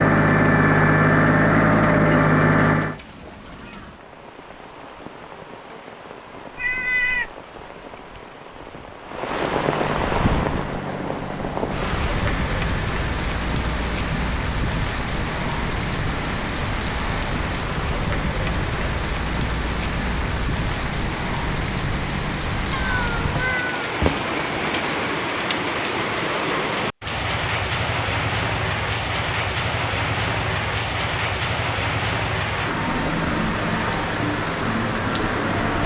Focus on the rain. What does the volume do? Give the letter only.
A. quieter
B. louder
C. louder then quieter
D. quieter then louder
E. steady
B.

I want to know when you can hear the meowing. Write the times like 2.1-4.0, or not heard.
6.5-7.3, 22.7-24.2.